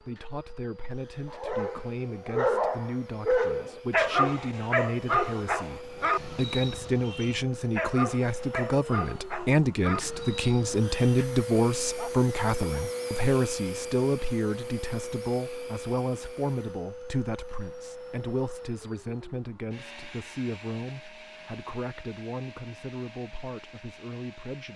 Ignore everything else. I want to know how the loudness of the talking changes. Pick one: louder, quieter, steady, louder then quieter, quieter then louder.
louder then quieter.